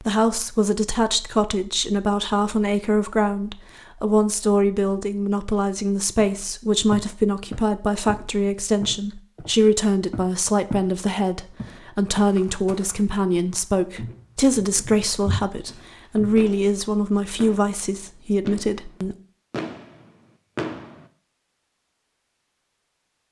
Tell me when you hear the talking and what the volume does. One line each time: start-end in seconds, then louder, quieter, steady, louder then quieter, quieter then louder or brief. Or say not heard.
0.0-19.1 steady.